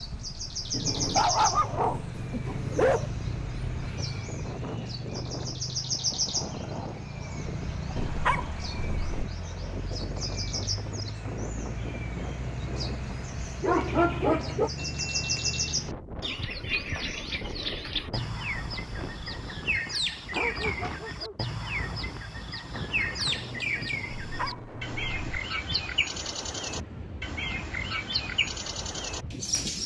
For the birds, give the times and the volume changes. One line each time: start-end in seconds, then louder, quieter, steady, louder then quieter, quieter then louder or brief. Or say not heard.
0.0-29.8 steady.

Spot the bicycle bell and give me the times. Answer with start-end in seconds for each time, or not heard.
14.8-15.8.